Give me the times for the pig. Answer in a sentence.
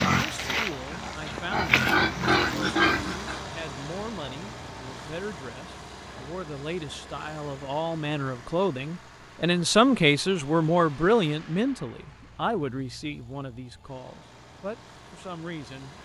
You can hear the pig from 0.0 to 3.4 s.